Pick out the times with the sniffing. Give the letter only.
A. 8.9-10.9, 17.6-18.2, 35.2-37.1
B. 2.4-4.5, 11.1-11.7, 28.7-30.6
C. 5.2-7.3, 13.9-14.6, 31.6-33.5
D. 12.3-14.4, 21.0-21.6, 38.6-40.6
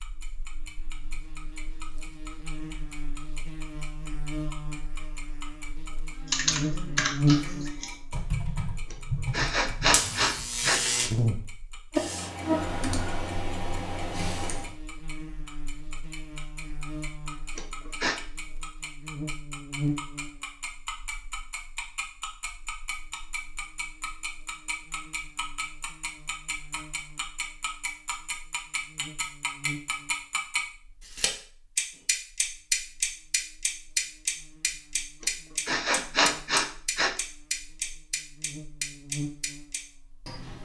A.